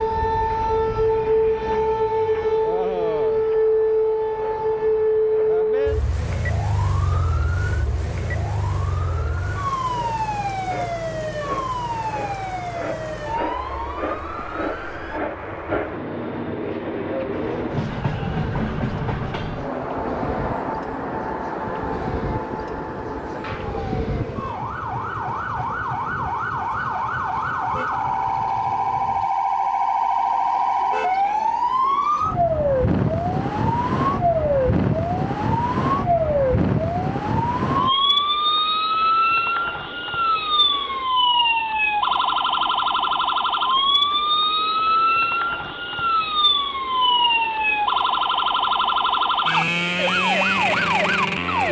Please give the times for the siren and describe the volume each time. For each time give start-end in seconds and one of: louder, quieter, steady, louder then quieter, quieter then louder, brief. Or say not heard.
0.0-15.2 quieter
17.3-51.6 louder.